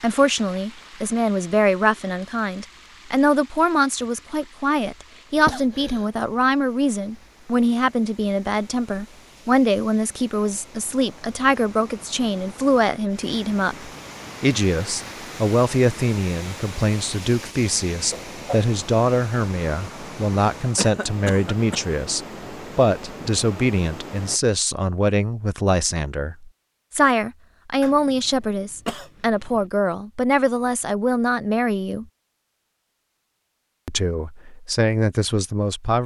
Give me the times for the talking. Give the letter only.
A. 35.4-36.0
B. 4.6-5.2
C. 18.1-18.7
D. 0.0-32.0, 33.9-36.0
D.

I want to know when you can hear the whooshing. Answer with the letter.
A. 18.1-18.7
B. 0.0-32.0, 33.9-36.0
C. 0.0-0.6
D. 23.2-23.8
A.